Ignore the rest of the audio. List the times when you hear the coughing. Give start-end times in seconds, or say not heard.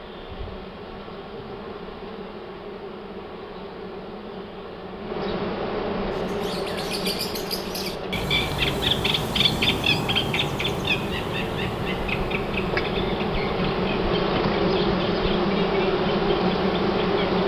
not heard.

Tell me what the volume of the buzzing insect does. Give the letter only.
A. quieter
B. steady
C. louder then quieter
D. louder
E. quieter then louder
D.